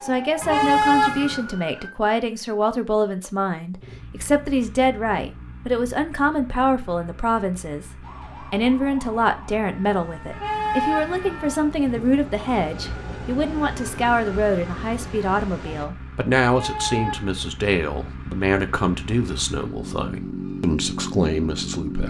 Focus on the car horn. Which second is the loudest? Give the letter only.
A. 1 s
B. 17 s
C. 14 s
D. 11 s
A.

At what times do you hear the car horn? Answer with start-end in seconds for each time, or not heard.
0.4-1.4, 10.3-12.2, 16.4-17.4.